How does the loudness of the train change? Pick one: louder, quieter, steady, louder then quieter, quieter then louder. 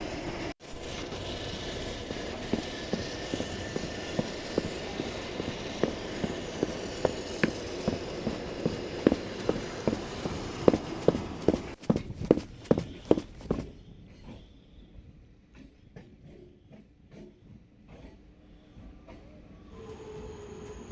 quieter.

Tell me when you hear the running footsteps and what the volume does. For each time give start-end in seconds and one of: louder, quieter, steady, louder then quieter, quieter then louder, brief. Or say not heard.
2.1-13.7 louder.